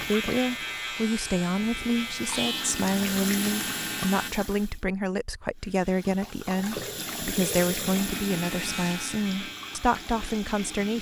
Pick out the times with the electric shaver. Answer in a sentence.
The electric shaver can be heard from 0.0 to 4.3 s and from 7.8 to 10.9 s.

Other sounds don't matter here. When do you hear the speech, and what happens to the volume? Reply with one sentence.
The speech can be heard from 0.0 to 10.9 s, at a steady volume.